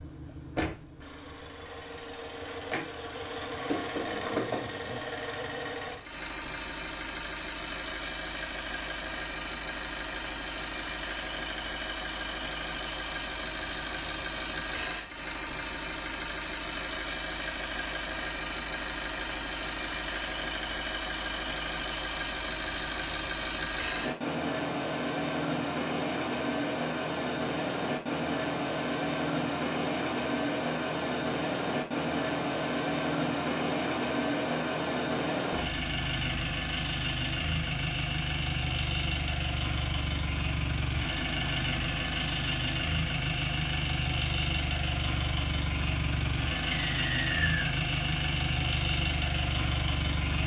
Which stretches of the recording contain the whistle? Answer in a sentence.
The whistle can be heard from 46.7 to 47.8 s.